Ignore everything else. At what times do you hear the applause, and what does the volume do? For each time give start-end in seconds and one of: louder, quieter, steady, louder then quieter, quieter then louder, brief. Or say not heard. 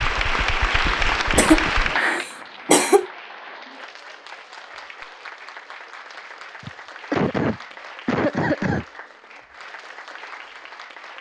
0.0-11.1 quieter.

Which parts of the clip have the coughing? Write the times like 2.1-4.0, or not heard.
1.4-3.0, 6.6-8.8.